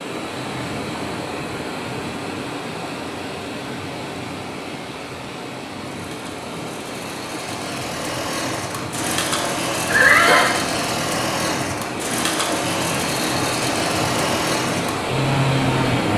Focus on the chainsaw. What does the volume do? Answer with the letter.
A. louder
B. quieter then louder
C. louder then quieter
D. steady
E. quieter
A.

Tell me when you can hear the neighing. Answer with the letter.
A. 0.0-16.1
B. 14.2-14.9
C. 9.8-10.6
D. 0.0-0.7
C.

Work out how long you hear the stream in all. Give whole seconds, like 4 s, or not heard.
16 s.